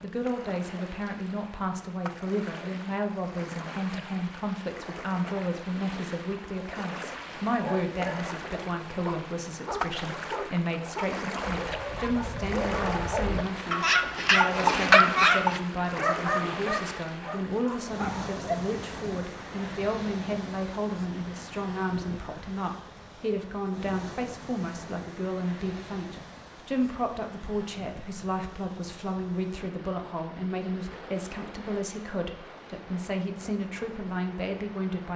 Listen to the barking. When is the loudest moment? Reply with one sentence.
The volume of the barking peaks at 15 seconds.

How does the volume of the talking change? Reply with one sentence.
The loudness of the talking stays about the same.